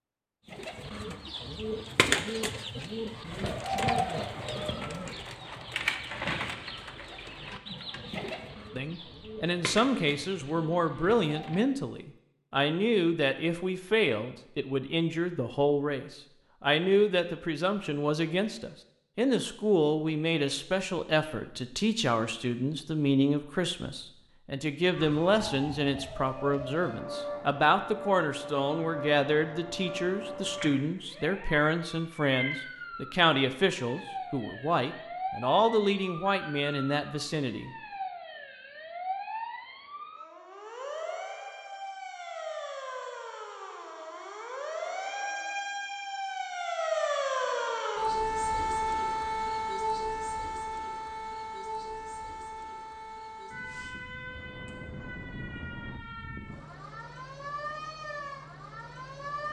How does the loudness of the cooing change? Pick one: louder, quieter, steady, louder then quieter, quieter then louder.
quieter.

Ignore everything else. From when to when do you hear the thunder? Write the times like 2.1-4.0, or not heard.
54.2-56.0.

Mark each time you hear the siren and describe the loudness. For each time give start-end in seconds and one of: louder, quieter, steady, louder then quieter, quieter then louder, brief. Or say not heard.
24.9-59.4 louder then quieter.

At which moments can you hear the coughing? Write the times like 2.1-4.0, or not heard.
not heard.